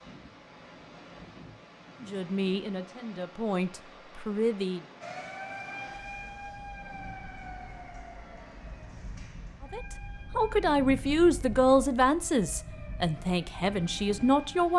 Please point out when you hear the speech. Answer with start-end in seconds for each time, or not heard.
2.0-4.8, 9.7-14.7.